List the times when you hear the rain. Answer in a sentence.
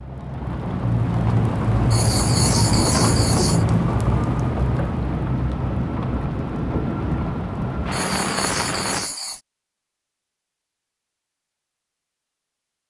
The rain can be heard from 0.0 to 9.1 s.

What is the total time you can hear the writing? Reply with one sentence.
The writing can be heard for 3 seconds in total.